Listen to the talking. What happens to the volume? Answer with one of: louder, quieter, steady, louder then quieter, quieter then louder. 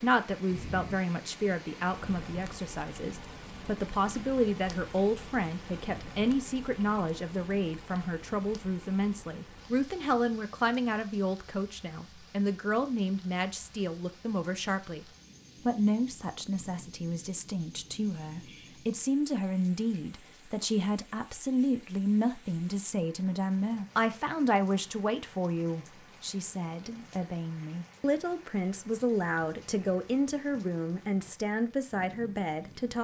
steady.